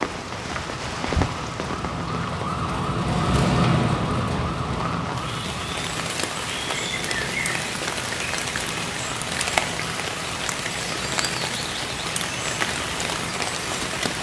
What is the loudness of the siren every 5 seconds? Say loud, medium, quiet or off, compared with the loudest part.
loud, medium, medium.